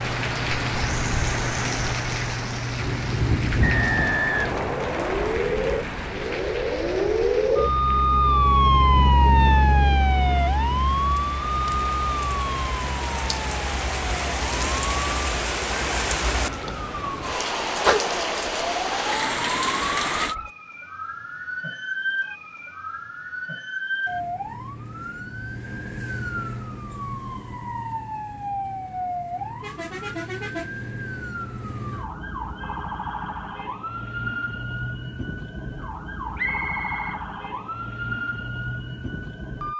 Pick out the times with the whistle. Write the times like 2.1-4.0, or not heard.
3.6-5.3, 36.4-37.6.